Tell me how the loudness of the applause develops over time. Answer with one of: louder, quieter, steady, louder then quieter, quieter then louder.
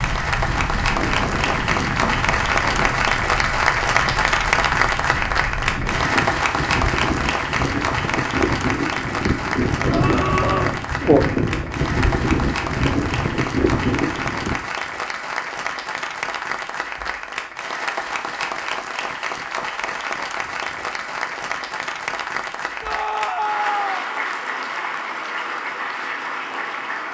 quieter.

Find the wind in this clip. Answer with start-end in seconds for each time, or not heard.
0.0-14.7.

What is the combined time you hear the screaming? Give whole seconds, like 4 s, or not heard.
2 s.